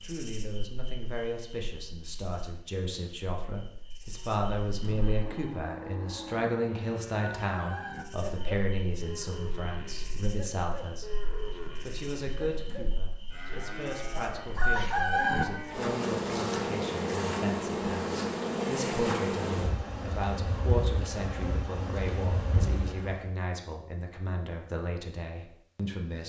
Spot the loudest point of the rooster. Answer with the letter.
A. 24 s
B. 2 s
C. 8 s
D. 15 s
D.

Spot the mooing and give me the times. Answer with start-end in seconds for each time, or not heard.
4.1-15.9.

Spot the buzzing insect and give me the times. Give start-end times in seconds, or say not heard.
0.0-5.5, 8.0-23.2.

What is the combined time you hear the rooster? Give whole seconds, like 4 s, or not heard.
2 s.